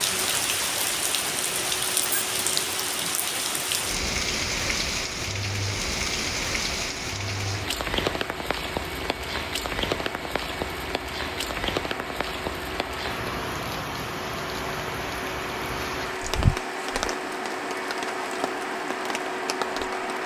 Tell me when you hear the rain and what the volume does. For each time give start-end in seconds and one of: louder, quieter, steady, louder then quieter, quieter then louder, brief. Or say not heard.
0.0-20.2 quieter.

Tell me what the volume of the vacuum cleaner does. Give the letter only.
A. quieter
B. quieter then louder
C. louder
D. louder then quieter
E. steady
C.